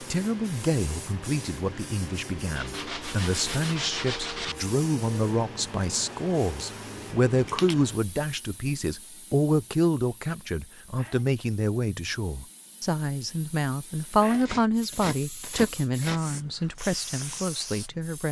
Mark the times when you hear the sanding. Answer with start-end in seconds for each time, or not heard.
2.5-4.5, 14.3-16.2.